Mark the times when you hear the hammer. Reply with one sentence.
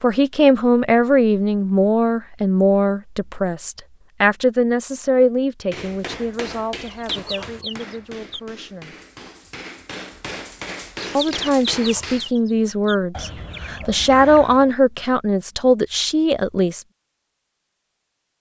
You can hear the hammer from 5.7 to 12.3 s.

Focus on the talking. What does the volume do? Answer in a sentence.
The volume of the talking goes down, then up.